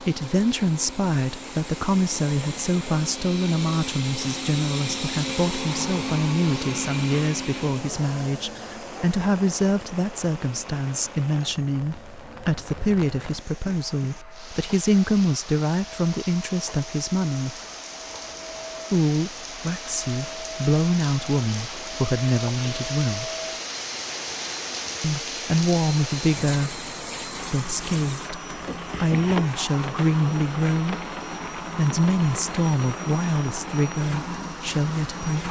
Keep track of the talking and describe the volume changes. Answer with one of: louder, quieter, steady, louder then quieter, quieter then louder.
steady.